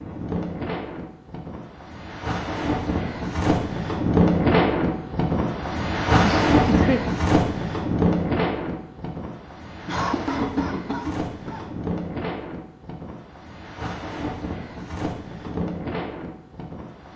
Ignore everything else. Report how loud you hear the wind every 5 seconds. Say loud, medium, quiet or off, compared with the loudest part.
loud, loud, medium, medium.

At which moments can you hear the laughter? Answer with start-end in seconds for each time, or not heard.
6.2-7.0, 9.8-11.7.